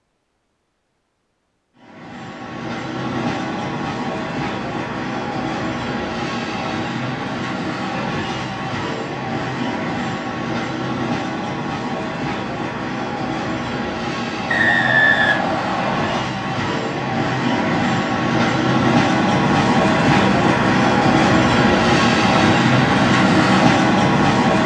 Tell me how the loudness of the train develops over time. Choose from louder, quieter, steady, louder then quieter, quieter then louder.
louder.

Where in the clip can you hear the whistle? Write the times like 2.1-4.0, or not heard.
14.5-16.2.